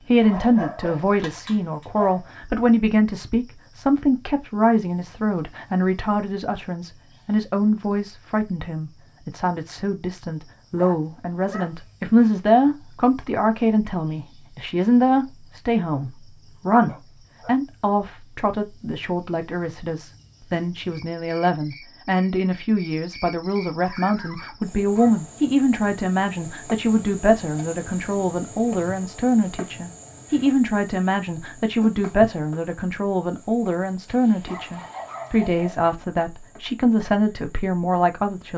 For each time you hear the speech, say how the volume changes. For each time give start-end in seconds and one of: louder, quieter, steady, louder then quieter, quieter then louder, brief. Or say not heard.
0.1-38.5 steady.